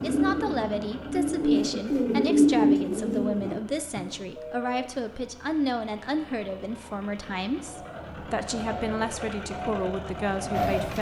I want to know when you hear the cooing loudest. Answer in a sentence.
The loudest moment of the cooing is at 3 seconds.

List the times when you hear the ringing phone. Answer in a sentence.
The ringing phone can be heard from 4.3 to 4.9 s.